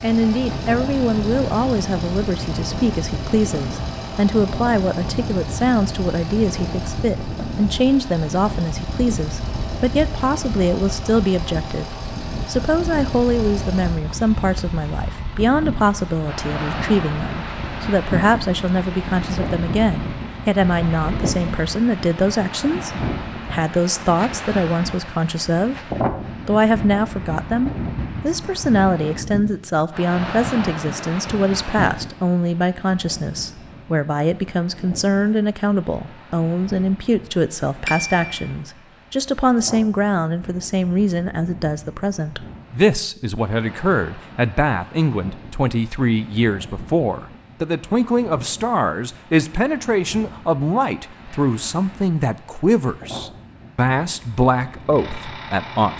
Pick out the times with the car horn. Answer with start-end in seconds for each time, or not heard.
37.9-38.5.